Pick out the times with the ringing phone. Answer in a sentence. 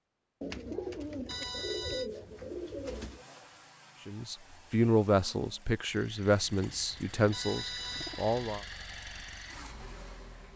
You can hear the ringing phone from 1.2 to 2.1 s and from 7.3 to 8.5 s.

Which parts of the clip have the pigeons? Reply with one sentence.
The pigeons can be heard from 0.4 to 3.2 s and from 6.2 to 8.2 s.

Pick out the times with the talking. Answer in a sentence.
The talking can be heard from 4.0 to 8.6 s.